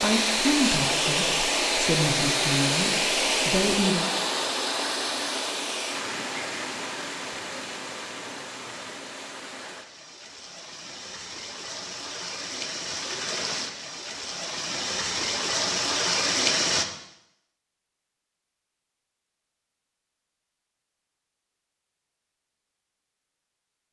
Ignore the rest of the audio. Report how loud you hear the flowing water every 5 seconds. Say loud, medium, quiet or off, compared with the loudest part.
loud, medium, medium, loud, off.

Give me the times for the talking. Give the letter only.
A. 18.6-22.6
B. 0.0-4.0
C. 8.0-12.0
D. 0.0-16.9
B.